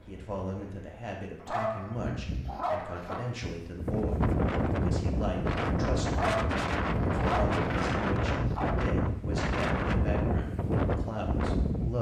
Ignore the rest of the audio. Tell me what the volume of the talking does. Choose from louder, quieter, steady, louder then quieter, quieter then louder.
steady.